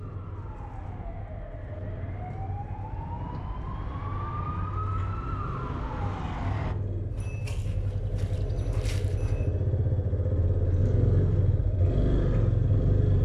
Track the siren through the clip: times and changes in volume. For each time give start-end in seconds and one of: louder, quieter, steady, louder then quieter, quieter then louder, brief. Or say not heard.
0.0-6.8 louder.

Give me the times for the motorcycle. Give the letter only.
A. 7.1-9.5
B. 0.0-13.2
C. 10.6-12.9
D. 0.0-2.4
B.